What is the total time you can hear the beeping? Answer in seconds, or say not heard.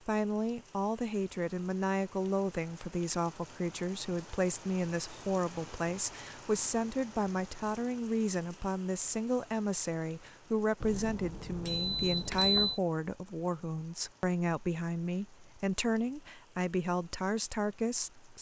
2 s.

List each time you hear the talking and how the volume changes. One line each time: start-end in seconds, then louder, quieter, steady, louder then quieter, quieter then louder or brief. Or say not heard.
0.1-18.3 steady.